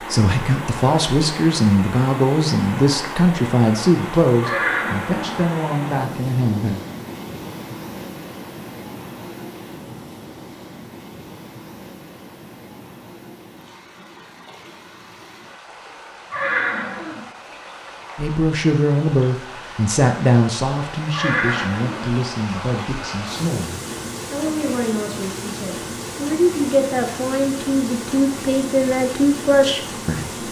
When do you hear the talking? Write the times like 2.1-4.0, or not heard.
0.0-6.8, 18.1-30.4.